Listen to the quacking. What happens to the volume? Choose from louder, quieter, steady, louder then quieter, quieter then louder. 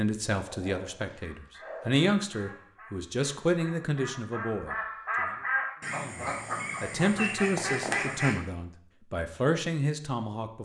louder.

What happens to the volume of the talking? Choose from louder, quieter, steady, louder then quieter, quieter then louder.
quieter then louder.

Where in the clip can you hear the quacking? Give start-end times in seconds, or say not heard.
1.1-8.4.